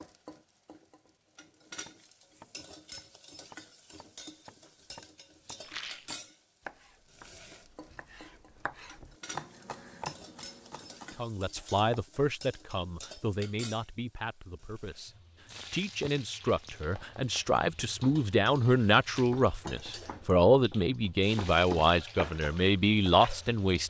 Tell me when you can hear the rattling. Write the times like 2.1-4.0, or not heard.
5.6-6.1.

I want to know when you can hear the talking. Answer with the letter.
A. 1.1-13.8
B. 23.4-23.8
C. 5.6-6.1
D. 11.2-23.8
D.